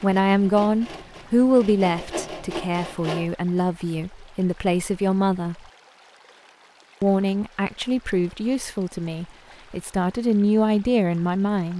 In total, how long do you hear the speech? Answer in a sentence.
You can hear the speech for 10 seconds altogether.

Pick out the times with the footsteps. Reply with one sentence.
You can't hear the footsteps here.